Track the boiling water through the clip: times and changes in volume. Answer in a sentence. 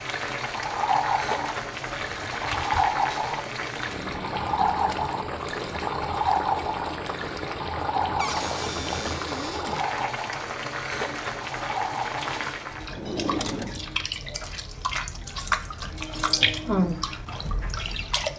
You can hear the boiling water from 0.0 to 12.9 s, at a steady volume.